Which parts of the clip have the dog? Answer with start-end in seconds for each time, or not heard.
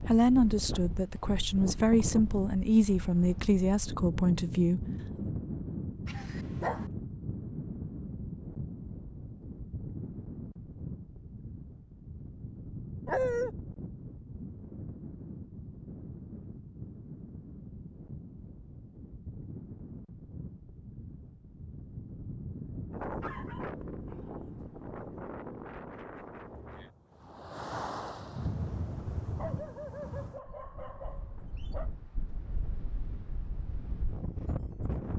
6.0-6.8, 13.1-13.5, 23.2-24.4, 29.2-31.9.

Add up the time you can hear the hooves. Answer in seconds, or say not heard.
not heard.